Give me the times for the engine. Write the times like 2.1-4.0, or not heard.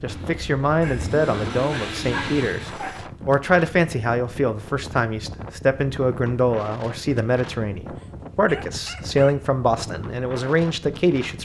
0.0-2.8.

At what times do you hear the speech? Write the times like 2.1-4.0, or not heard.
0.0-11.3.